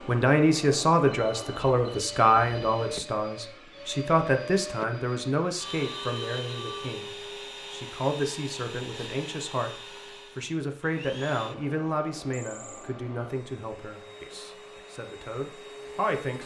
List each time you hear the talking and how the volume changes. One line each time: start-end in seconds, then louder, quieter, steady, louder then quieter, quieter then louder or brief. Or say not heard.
0.0-16.4 quieter.